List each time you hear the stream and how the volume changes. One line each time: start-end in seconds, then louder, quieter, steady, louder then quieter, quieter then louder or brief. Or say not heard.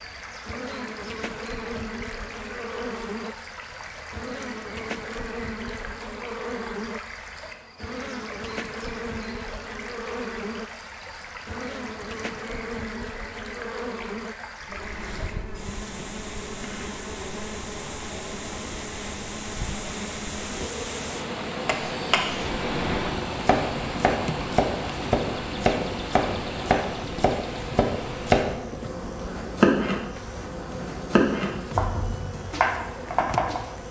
0.0-28.4 louder.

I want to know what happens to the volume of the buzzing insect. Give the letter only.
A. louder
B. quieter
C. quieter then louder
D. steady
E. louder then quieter
D.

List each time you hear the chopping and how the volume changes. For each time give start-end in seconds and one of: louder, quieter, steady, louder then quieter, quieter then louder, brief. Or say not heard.
21.6-33.6 steady.